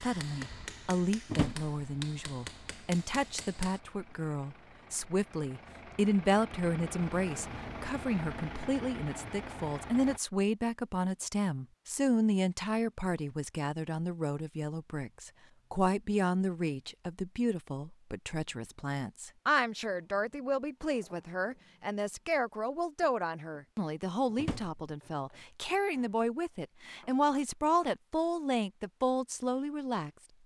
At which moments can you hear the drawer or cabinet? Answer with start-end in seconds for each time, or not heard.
1.2-1.7, 24.4-24.8.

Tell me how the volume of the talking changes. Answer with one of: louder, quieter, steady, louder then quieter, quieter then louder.
steady.